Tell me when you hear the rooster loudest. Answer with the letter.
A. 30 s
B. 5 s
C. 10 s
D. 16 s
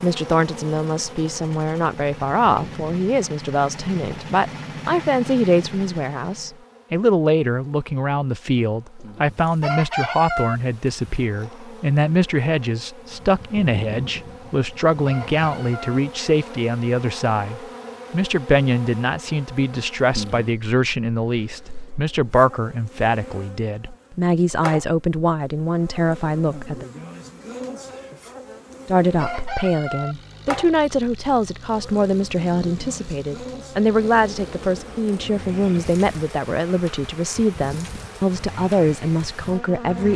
C.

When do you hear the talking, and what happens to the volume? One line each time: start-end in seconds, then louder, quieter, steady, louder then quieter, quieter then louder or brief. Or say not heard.
0.0-26.9 steady
28.9-40.1 steady.